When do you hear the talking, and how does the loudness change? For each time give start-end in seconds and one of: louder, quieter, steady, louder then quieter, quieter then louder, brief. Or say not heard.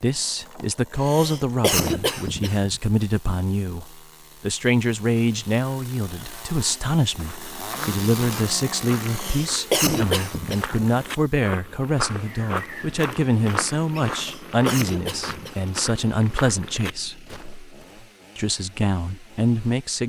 0.0-17.2 steady
18.4-20.0 brief.